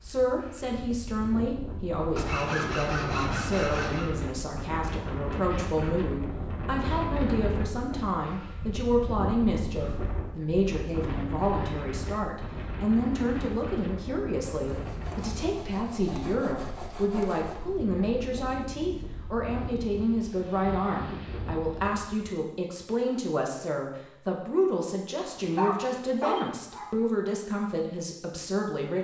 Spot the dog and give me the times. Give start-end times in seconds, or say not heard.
25.2-26.9.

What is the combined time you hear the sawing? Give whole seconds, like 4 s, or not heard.
5 s.